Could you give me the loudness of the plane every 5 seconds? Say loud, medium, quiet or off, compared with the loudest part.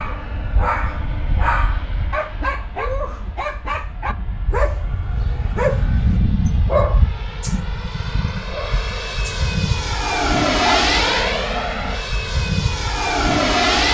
quiet, medium, loud.